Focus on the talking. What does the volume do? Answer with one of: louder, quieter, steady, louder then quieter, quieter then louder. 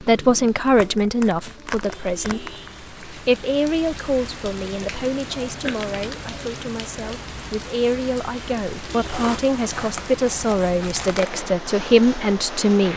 quieter then louder.